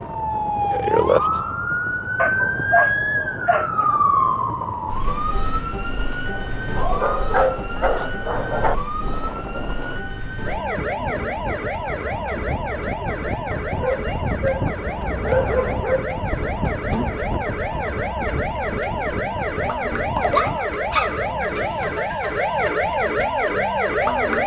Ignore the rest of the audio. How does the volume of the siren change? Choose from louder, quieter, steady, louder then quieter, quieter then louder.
quieter then louder.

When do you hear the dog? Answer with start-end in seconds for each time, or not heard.
2.1-4.0, 6.8-8.8, 13.8-16.2, 20.4-21.2.